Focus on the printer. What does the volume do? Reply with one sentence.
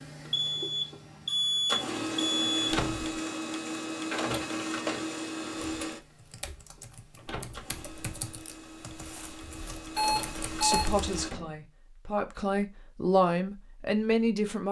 The loudness of the printer goes down, then up.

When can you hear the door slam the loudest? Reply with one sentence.
The loudest moment of the door slam is at 3 seconds.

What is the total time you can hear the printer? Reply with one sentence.
The printer can be heard for 11 seconds in total.